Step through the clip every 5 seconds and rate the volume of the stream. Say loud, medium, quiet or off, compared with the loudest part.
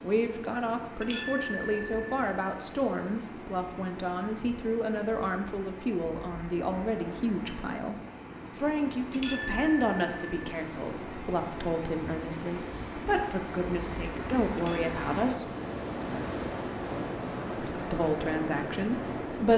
medium, medium, loud, loud.